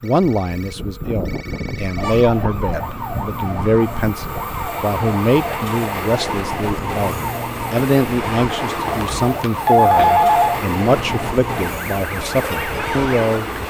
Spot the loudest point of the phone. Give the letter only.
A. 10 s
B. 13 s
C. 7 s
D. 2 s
A.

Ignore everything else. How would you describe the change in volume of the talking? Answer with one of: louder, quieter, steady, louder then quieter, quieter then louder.
steady.